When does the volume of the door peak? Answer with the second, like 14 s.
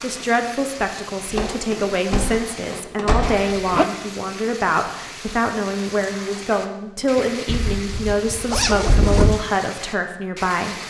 3 s.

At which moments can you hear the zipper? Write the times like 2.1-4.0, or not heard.
3.1-3.9, 7.5-9.4.